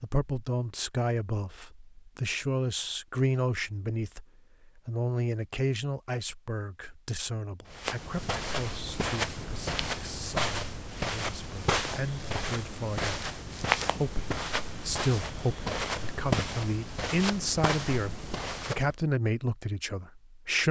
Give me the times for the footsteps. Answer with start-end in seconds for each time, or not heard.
7.7-18.9.